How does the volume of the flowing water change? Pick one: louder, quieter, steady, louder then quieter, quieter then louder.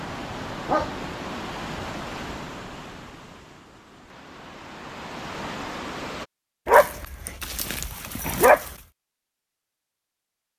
quieter then louder.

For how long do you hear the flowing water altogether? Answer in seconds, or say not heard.
6 s.